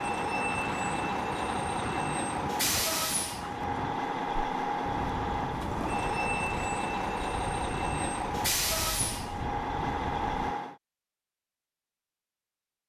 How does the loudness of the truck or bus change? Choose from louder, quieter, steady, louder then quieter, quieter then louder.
steady.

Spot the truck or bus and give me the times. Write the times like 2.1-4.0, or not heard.
0.0-10.8.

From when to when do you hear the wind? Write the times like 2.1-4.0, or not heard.
0.0-10.6.